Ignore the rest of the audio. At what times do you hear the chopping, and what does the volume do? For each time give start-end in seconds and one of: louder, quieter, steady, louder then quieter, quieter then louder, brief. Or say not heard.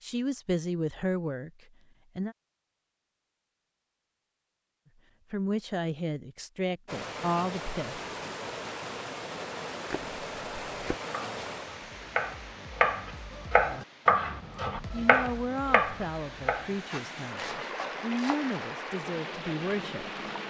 9.8-18.6 louder then quieter.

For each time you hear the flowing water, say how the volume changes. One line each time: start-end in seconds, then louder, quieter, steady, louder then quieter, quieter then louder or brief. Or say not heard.
6.8-20.4 quieter then louder.